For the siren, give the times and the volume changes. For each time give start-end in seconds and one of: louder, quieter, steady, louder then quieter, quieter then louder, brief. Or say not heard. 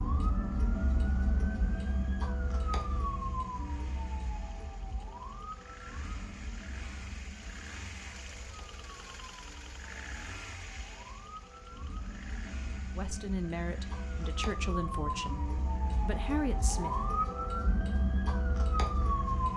0.0-19.5 quieter then louder.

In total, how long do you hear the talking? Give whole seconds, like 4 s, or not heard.
4 s.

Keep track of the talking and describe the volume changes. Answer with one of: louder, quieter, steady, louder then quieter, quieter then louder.
quieter then louder.